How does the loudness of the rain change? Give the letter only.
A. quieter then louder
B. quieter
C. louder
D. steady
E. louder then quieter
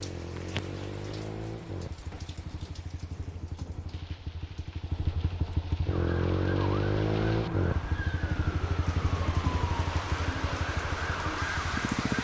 A.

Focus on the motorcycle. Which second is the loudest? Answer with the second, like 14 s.
7 s.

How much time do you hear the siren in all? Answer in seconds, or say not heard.
6 s.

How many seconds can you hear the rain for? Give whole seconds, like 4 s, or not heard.
12 s.